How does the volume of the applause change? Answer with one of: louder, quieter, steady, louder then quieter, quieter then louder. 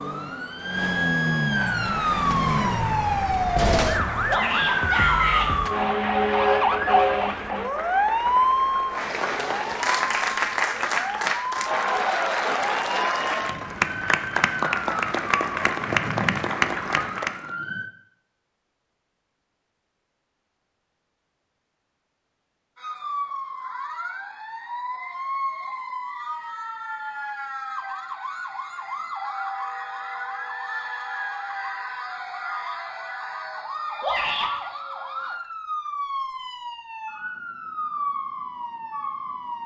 louder.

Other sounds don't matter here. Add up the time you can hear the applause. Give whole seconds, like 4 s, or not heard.
16 s.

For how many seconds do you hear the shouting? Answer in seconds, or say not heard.
2 s.